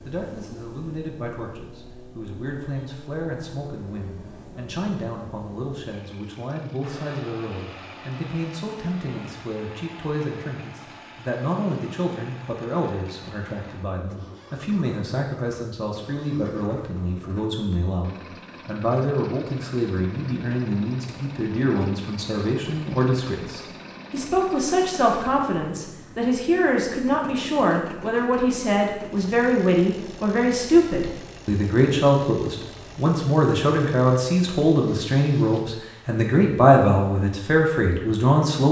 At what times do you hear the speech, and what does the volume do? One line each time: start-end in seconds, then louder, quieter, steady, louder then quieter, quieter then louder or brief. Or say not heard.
0.0-38.6 louder.